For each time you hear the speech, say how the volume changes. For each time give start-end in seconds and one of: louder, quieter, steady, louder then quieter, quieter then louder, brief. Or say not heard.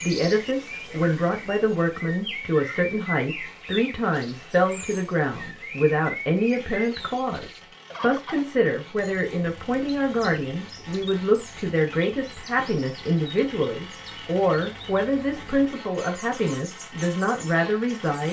0.0-18.2 steady.